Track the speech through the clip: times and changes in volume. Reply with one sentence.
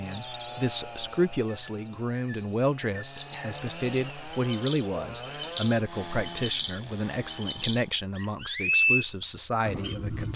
The speech can be heard from 0.0 to 10.3 s, at a steady volume.